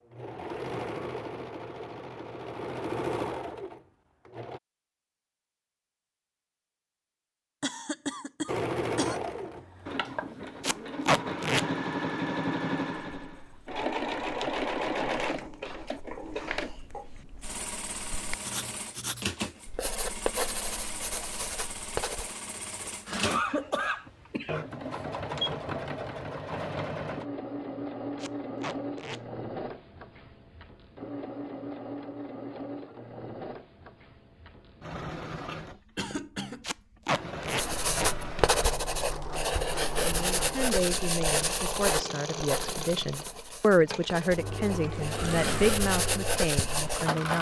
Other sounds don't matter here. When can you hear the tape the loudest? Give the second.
11 s.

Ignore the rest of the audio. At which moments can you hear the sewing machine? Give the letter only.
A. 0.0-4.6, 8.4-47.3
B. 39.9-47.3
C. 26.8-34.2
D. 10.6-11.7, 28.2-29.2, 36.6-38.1
A.